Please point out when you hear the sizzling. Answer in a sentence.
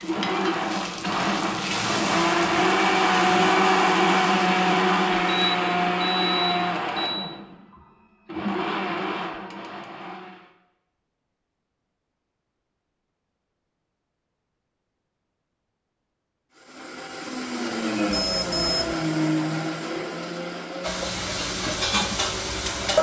The sizzling can be heard from 0.0 to 5.2 s and from 20.8 to 22.9 s.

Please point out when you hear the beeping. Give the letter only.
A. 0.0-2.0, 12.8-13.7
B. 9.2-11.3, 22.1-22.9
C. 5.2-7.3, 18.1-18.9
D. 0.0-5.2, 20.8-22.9
C.